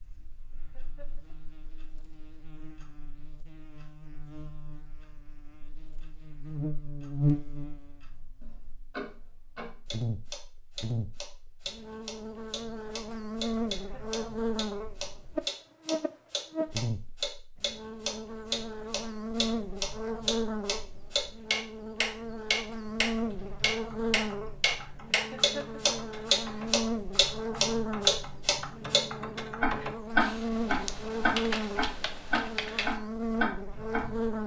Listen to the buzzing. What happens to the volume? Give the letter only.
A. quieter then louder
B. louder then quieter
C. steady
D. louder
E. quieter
D.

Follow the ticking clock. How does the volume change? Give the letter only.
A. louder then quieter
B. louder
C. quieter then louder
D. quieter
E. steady
B.